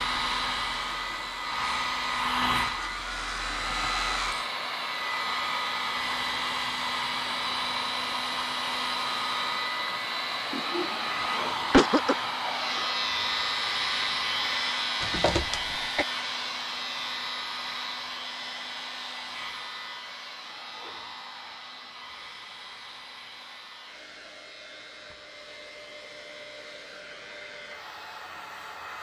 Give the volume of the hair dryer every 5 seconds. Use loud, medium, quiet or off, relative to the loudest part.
loud, loud, loud, medium, quiet, quiet.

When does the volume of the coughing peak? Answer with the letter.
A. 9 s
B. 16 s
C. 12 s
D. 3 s
C.